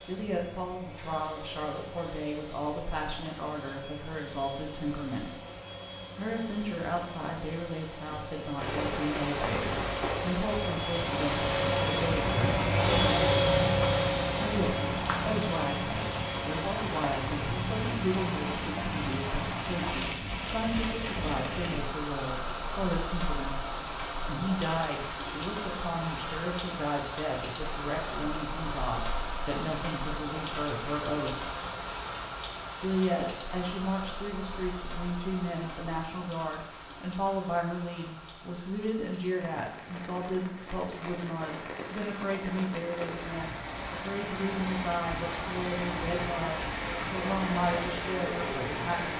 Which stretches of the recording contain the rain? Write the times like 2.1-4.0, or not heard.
8.6-49.1.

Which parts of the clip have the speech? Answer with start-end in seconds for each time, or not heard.
0.0-5.3, 6.2-12.3, 14.3-23.6, 24.2-31.4, 32.8-49.1.